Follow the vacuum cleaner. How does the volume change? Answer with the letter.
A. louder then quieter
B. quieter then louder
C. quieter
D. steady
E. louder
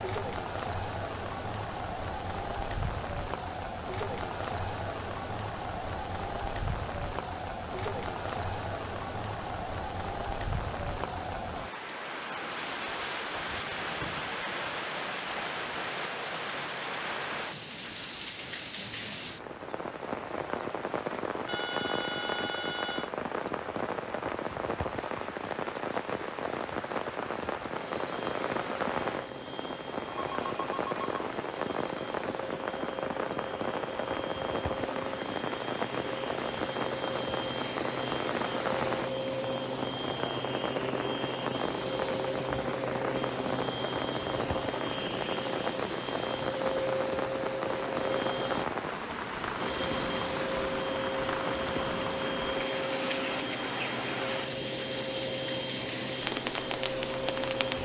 E.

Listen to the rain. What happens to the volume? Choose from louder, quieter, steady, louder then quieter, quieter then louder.
steady.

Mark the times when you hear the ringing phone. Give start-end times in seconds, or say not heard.
21.4-23.1, 30.1-31.1.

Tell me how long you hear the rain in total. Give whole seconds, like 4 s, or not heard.
58 s.